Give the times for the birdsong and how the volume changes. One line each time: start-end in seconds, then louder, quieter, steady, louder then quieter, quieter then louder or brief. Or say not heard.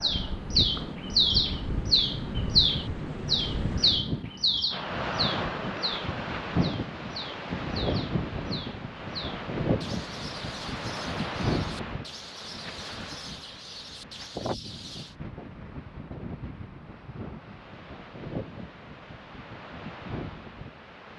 0.0-15.2 quieter.